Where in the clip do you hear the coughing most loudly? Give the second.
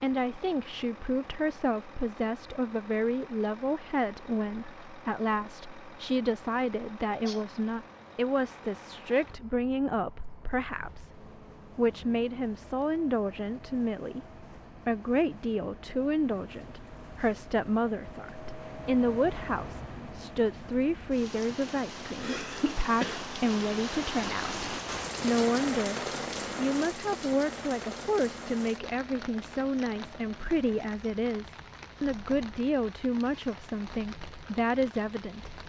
23 s.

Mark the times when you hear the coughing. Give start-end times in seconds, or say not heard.
7.0-7.5, 22.2-23.2.